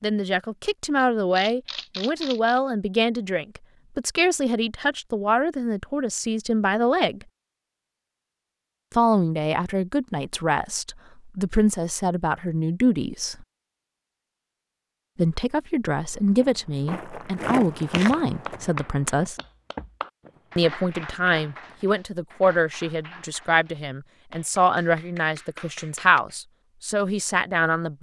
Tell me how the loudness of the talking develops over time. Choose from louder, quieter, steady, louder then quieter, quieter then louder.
steady.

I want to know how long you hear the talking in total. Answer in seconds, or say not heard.
23 s.